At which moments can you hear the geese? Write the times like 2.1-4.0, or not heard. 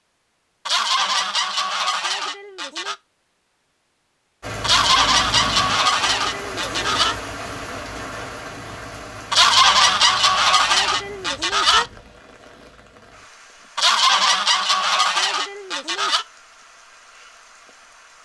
0.7-3.0, 4.6-7.2, 9.3-11.8, 13.8-16.2.